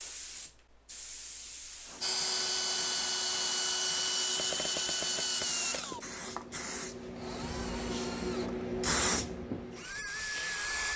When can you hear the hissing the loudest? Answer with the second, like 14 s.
9 s.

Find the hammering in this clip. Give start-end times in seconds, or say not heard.
not heard.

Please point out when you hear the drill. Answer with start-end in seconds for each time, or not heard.
2.0-10.9.